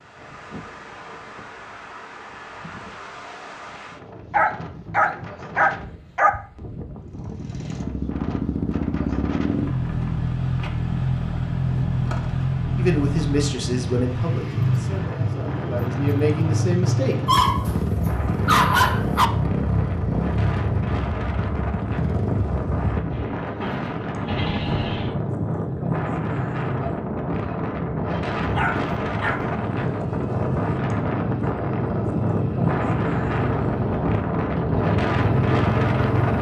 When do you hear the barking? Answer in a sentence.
The barking can be heard from 4.3 to 6.3 s, from 17.2 to 19.3 s and from 28.4 to 29.5 s.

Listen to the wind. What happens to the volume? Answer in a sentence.
The loudness of the wind goes up.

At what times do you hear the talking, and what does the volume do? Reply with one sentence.
The talking can be heard from 12.8 to 17.1 s, getting quieter then louder.